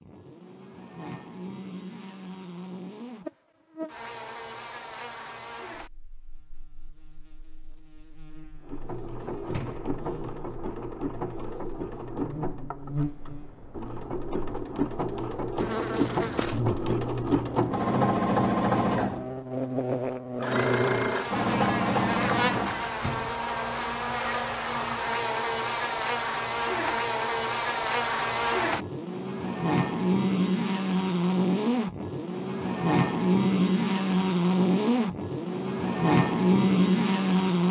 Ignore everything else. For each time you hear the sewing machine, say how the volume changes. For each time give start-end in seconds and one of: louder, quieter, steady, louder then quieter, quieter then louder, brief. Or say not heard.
8.6-19.3 louder
20.4-22.9 brief.